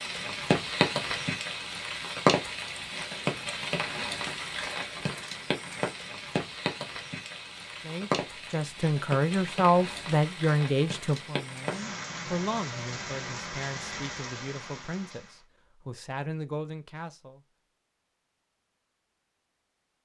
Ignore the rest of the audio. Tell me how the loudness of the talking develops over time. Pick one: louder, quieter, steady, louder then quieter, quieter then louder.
quieter.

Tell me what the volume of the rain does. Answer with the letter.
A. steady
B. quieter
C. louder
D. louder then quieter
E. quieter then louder
B.